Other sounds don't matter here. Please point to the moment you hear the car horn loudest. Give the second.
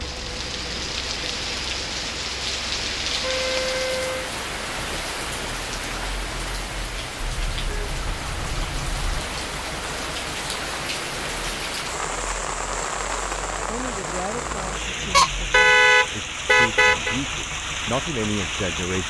16 s.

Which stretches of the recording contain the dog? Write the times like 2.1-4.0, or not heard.
not heard.